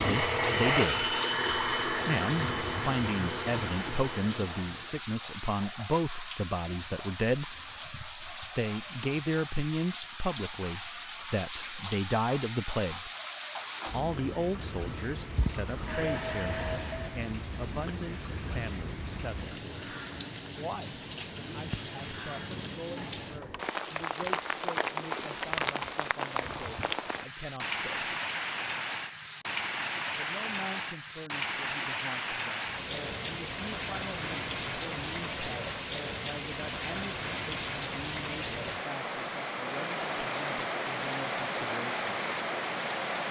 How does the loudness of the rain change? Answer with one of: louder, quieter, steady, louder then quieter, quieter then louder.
louder.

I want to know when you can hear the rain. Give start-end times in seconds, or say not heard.
0.0-43.2.